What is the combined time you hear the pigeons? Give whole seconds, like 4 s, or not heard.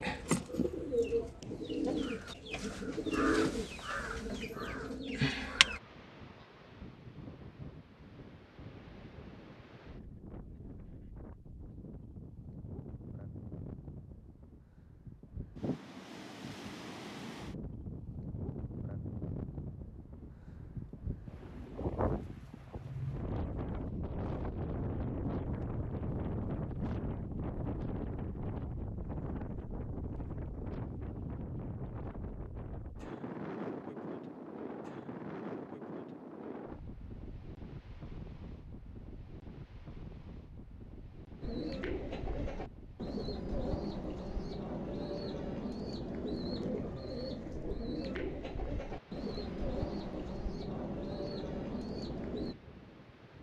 17 s.